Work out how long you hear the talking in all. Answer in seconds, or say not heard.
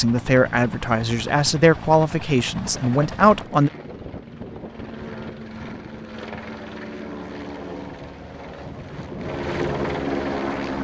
4 s.